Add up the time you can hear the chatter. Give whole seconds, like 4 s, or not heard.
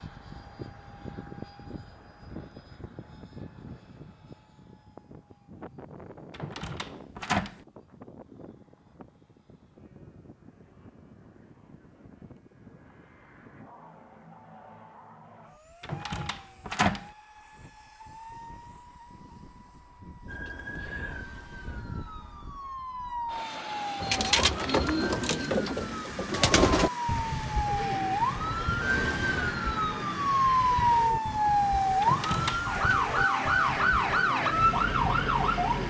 not heard.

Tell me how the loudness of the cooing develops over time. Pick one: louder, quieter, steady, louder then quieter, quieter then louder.
quieter.